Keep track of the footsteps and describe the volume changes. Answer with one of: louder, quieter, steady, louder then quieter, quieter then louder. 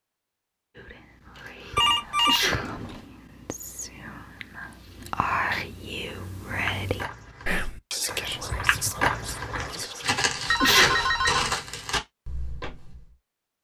louder.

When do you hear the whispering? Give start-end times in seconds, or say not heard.
0.8-10.1.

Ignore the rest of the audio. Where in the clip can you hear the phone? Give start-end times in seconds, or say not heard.
1.8-3.0, 10.4-11.4.